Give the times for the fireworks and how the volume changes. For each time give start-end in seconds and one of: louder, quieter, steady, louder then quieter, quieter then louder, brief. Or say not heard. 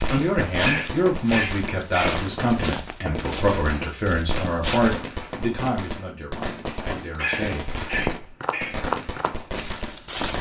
0.0-10.3 steady.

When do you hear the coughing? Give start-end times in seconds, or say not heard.
0.6-2.2, 7.2-8.8.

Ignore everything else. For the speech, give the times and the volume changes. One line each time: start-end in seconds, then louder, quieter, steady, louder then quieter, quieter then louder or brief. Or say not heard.
0.1-7.8 quieter.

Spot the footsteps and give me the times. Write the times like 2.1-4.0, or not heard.
0.0-5.1, 7.3-10.3.